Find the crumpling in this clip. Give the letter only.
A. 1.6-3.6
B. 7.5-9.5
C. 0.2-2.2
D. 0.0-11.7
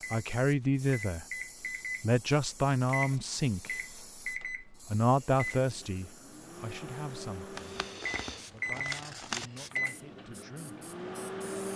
B.